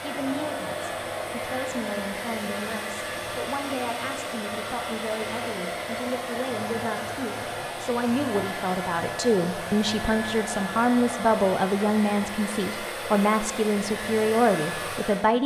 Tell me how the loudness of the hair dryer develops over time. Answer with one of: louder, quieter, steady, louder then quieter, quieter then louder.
steady.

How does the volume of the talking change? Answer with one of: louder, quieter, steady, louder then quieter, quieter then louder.
louder.